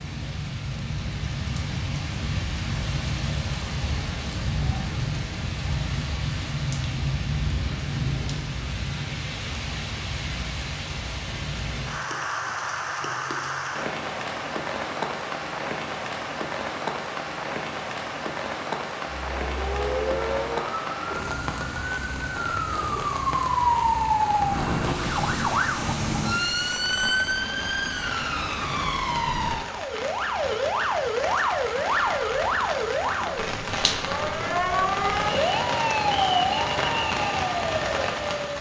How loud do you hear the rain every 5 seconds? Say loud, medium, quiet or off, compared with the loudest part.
loud, loud, loud, loud, loud, medium, loud, loud.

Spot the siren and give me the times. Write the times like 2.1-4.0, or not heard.
19.2-38.5.